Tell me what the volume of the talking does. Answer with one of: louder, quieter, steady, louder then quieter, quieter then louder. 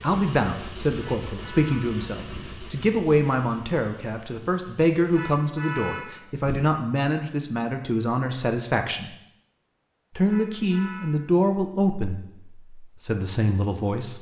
steady.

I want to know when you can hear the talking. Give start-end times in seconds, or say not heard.
0.0-9.1, 10.2-14.1.